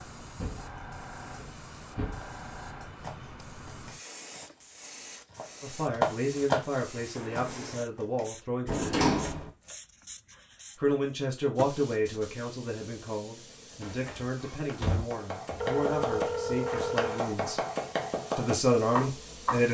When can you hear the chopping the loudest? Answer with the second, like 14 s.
6 s.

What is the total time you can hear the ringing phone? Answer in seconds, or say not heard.
2 s.